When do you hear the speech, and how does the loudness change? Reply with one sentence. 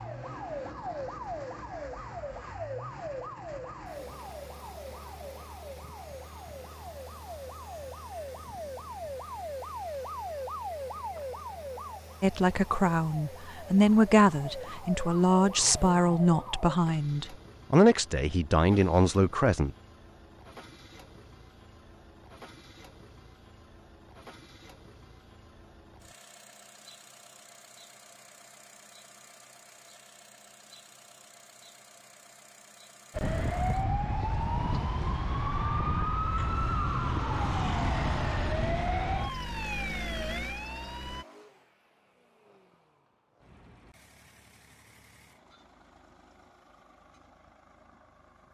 The speech can be heard from 12.2 to 19.7 s, at a steady volume.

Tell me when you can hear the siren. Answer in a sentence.
The siren can be heard from 0.0 to 16.8 s and from 33.1 to 41.2 s.